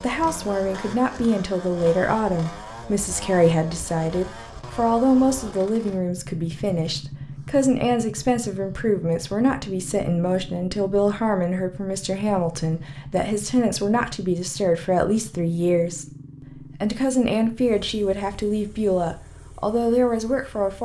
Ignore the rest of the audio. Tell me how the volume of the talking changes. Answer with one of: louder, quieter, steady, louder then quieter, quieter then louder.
steady.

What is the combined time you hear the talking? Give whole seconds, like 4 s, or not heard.
20 s.